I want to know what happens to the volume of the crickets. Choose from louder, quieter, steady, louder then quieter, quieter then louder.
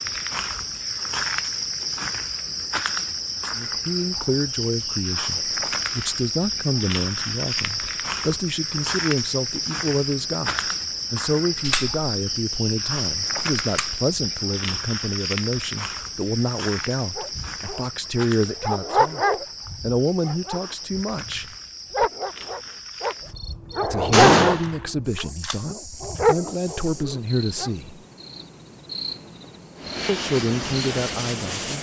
quieter.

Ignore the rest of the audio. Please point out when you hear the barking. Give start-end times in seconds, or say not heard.
17.1-23.1, 23.8-24.6, 25.2-27.7.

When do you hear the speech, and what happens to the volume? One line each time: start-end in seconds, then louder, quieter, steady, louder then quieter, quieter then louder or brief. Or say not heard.
3.5-21.4 steady
23.8-28.0 quieter then louder
30.1-31.7 brief.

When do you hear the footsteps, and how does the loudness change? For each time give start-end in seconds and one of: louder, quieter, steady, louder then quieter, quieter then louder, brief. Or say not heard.
not heard.